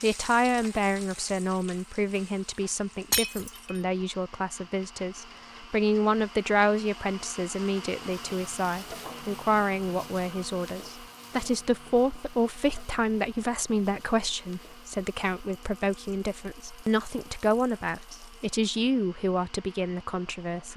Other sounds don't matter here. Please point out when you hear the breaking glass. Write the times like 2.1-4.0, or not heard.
3.1-3.8.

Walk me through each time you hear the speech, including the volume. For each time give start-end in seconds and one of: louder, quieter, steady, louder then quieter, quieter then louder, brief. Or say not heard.
0.0-20.7 steady.